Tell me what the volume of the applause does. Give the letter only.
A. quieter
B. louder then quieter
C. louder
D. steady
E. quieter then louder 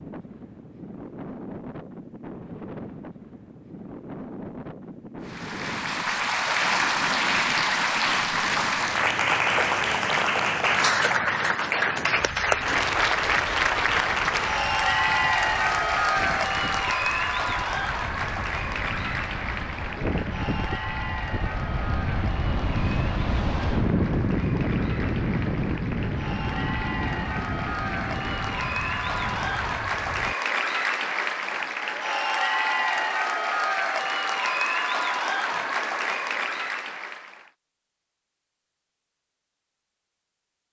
E.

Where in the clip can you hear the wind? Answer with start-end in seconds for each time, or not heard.
0.0-30.4.